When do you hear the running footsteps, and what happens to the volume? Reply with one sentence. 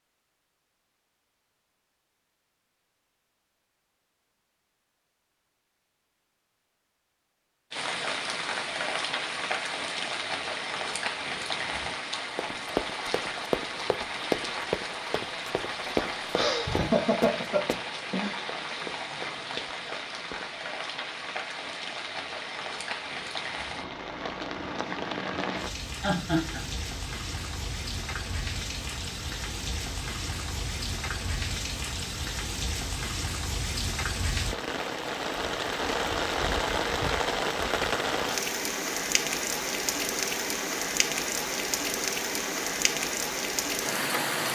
You can hear the running footsteps from 12.3 to 20.6 s, getting quieter.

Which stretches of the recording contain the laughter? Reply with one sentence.
The laughter can be heard from 16.4 to 18.4 s and from 26.0 to 26.7 s.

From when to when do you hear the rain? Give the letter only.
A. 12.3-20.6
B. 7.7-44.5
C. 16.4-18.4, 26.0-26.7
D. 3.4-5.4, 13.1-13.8
B.